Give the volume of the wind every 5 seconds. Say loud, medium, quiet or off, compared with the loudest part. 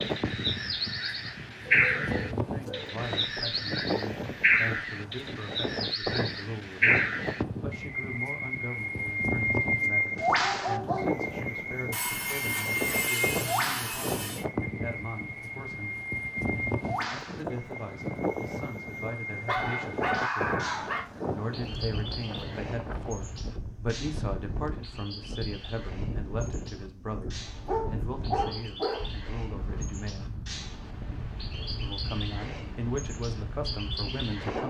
loud, loud, loud, loud, loud, medium, medium.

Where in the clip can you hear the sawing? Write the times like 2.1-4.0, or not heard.
11.9-14.4.